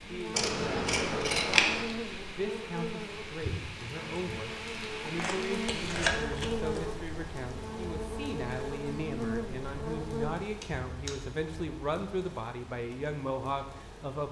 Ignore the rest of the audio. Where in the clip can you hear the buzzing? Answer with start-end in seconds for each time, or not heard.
0.0-10.3.